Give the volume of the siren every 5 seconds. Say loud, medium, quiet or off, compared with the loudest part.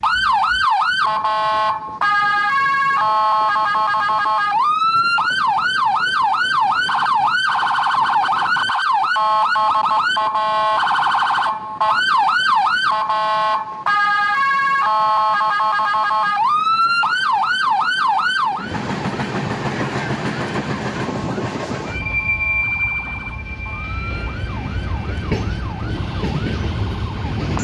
loud, loud, loud, loud, quiet, quiet.